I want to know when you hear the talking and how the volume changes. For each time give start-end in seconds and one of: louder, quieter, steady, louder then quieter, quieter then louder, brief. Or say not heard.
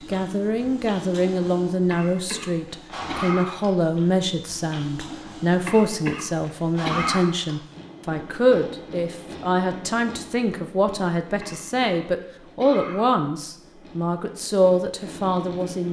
0.1-15.8 steady.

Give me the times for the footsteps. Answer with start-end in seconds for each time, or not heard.
not heard.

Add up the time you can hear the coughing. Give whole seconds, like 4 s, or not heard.
5 s.